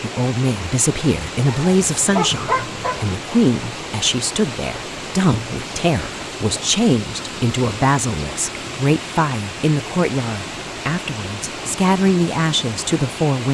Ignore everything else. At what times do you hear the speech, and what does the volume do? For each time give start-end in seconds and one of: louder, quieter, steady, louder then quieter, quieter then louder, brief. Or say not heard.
0.0-13.4 steady.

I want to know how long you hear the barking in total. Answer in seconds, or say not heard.
2 s.